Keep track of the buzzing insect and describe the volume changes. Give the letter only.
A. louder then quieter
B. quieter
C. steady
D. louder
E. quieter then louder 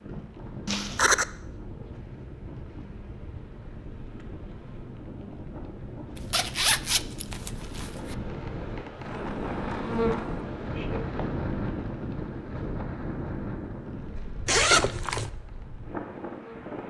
A.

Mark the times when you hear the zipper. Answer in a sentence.
The zipper can be heard from 0.7 to 1.2 s, from 6.2 to 8.2 s and from 14.4 to 15.3 s.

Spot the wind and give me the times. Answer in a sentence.
You can hear the wind from 0.0 to 16.8 s.